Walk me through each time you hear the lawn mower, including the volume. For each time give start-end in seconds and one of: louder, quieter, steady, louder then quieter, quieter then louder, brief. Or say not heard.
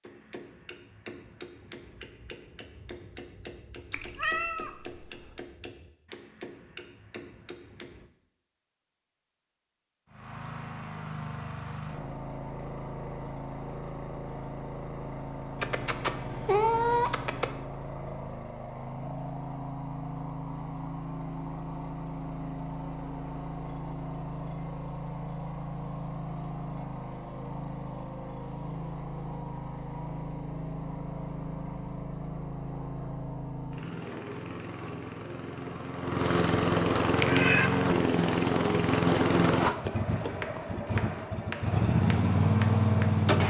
10.1-43.4 louder.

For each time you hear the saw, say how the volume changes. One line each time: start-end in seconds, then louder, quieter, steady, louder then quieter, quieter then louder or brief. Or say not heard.
not heard.